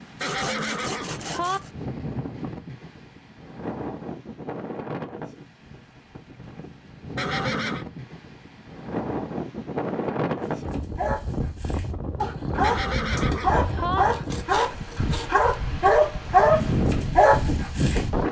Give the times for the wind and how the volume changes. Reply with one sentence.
The wind can be heard from 0.0 to 18.2 s, getting louder.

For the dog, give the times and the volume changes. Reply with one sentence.
The dog can be heard from 10.3 to 18.1 s, getting louder.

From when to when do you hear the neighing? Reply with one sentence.
The neighing can be heard from 0.2 to 1.6 s, from 7.2 to 7.8 s and from 12.6 to 14.1 s.